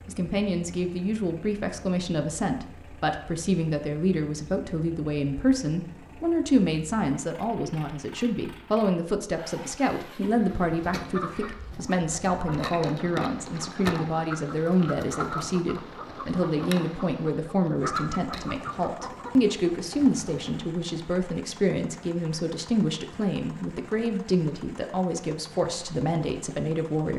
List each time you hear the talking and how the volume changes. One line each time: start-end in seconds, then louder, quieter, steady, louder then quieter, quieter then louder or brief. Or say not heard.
0.1-27.1 steady.